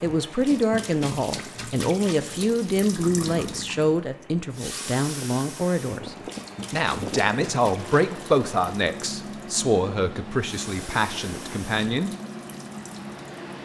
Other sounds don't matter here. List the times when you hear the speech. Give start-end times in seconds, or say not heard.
0.0-12.1.